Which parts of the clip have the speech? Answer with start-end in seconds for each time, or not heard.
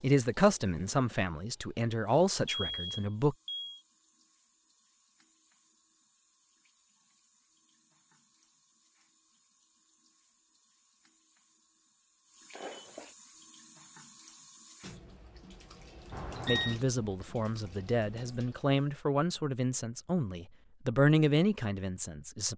0.0-3.4, 16.4-22.5.